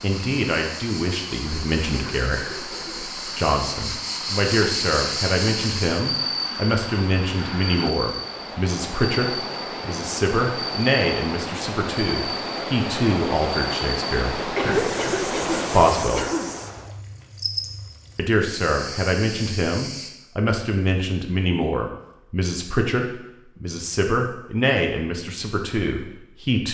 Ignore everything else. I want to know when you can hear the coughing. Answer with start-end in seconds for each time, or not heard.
1.9-3.1, 14.6-16.6.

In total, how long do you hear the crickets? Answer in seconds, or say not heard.
20 s.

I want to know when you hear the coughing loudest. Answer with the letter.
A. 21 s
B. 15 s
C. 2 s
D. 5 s
B.